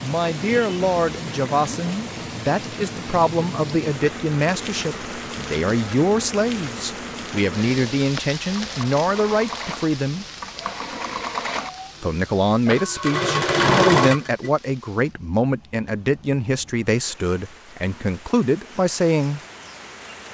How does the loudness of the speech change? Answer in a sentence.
The volume of the speech stays about the same.